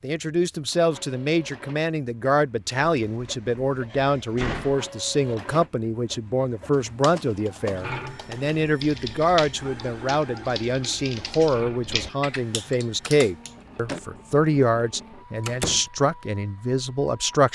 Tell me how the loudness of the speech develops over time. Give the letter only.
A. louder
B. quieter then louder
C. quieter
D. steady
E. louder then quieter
D.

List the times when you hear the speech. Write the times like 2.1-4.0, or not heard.
0.0-17.5.